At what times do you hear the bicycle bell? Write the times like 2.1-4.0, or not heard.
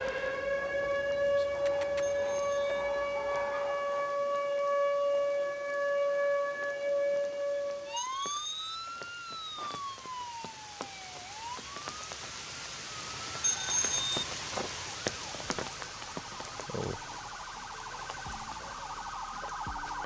2.0-2.8, 8.0-8.8, 13.4-14.2.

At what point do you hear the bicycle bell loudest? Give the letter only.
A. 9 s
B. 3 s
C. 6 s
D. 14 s
D.